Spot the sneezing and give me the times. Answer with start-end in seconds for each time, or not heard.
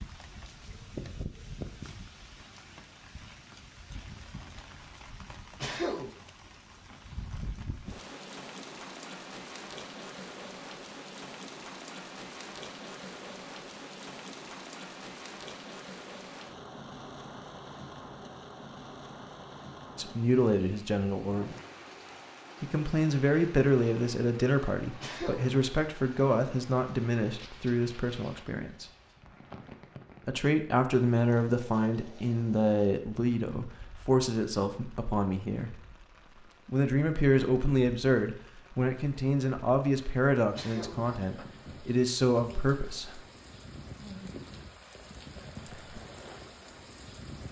5.6-6.2, 25.0-25.6, 40.5-41.1.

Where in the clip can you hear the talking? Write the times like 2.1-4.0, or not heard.
19.9-21.6, 22.6-28.9, 30.2-35.8, 36.6-43.2.